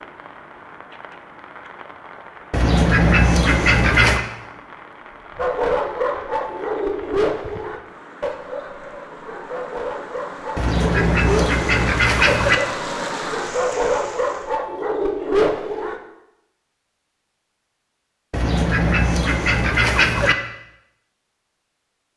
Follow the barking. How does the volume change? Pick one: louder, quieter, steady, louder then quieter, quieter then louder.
quieter then louder.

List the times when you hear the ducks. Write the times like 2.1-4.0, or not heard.
2.5-4.2, 10.6-12.6, 18.3-20.4.